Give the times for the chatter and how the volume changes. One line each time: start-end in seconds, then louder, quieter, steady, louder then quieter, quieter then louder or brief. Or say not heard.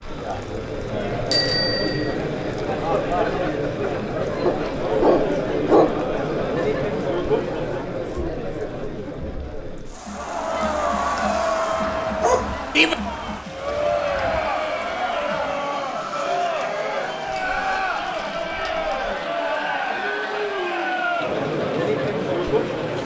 0.0-23.0 steady.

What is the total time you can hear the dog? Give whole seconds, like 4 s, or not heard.
2 s.